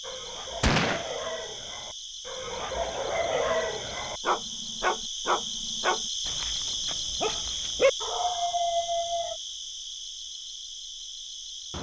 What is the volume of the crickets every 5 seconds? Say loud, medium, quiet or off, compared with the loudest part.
medium, loud, medium.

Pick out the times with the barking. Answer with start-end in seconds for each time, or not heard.
0.0-9.4.